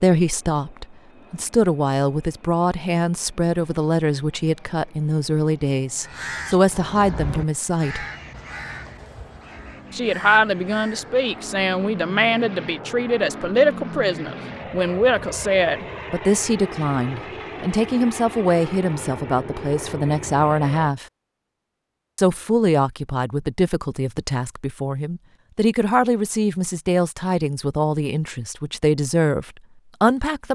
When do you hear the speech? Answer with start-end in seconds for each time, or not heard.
0.0-8.1, 9.9-21.1, 22.1-30.5.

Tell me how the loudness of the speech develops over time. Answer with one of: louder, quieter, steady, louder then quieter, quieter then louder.
steady.